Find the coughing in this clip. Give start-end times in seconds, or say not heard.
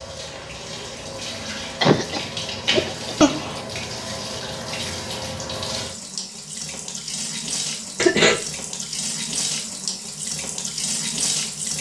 1.8-3.6, 8.0-8.4.